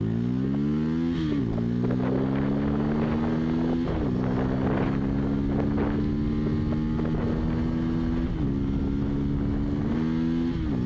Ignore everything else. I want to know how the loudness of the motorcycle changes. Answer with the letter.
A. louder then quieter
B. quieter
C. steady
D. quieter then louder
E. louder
C.